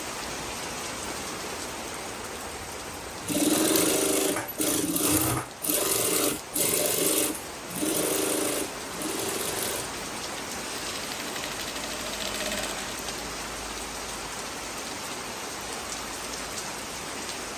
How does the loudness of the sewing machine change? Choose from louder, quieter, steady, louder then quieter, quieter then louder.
quieter.